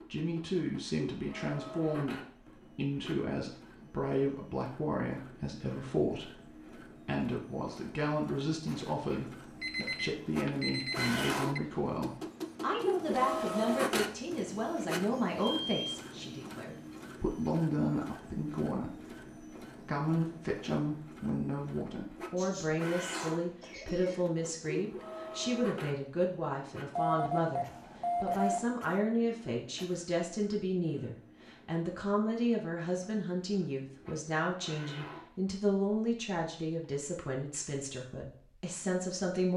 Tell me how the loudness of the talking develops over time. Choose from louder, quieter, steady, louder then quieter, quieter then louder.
steady.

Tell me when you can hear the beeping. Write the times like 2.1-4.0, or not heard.
9.6-11.6, 15.4-16.0, 26.9-28.8.